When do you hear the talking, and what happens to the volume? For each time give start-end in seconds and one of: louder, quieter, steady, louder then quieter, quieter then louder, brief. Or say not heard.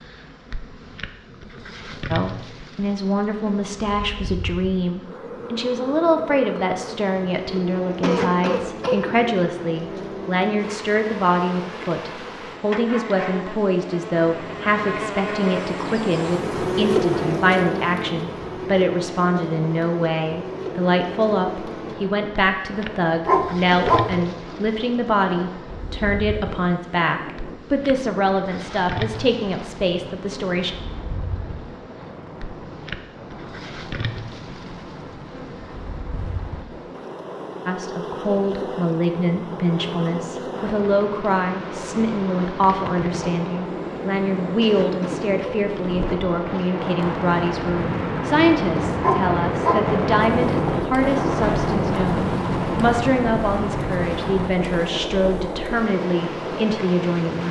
2.1-30.7 steady
37.6-57.4 steady.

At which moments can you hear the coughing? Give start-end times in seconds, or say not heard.
8.0-9.2, 23.7-24.4, 44.6-45.7.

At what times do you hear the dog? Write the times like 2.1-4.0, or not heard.
23.2-24.1, 49.0-49.9.